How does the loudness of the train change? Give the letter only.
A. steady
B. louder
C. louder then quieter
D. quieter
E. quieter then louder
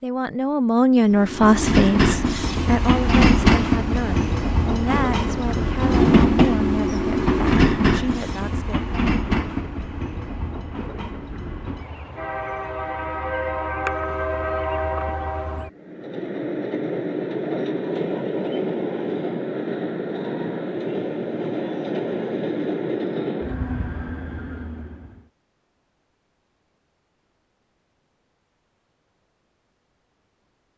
D.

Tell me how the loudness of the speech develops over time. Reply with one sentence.
The volume of the speech goes down.